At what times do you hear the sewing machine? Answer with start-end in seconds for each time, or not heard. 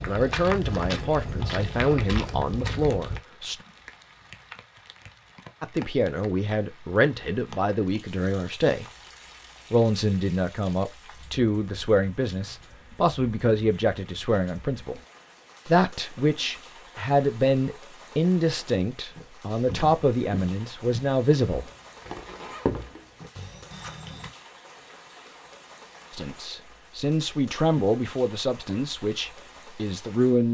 not heard.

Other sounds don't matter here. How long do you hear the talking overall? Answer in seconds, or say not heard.
22 s.